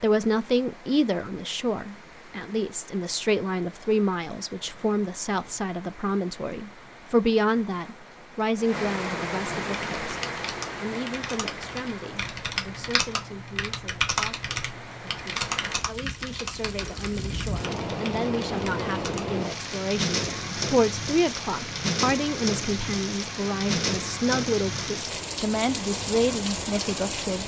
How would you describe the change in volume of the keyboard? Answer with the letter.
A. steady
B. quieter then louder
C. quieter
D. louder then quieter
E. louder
D.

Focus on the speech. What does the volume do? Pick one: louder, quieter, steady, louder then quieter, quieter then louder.
quieter then louder.